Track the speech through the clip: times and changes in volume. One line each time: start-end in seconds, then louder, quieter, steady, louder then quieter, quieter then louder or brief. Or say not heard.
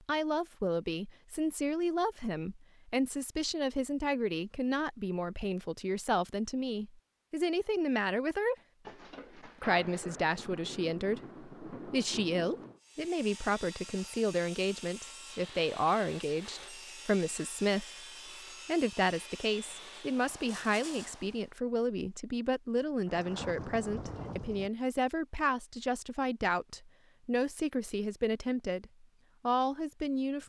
0.1-8.6 steady
9.4-17.9 steady
18.6-30.4 steady.